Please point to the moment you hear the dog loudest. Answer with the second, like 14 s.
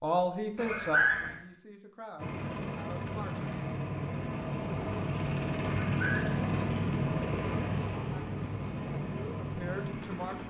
1 s.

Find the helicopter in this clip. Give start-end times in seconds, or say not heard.
2.1-10.4.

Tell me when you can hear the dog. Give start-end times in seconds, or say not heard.
0.6-1.3, 5.7-6.4.